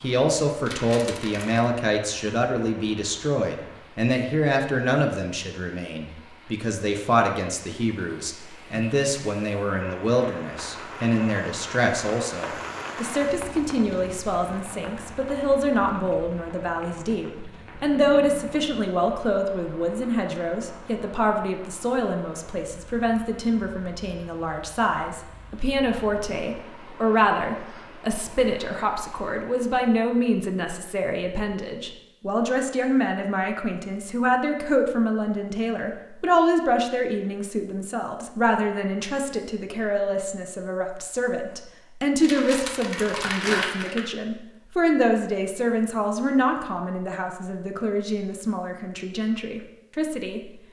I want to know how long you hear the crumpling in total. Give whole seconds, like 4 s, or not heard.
3 s.